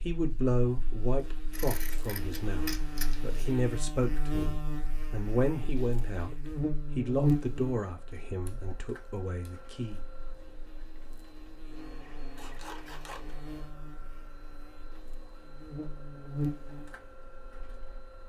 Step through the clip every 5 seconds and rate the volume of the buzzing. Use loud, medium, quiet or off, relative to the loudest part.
medium, loud, quiet, medium.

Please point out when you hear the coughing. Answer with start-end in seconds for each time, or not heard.
not heard.